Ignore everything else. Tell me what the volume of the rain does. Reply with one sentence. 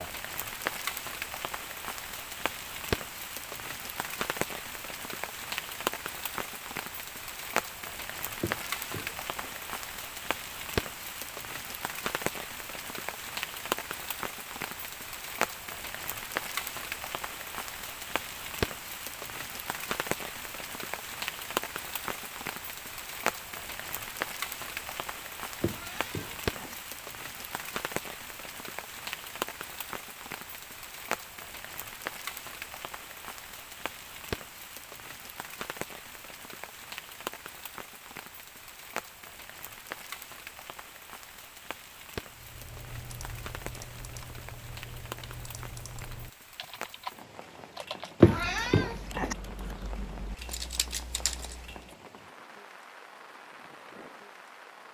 The loudness of the rain goes down.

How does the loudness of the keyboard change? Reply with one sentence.
The volume of the keyboard goes up.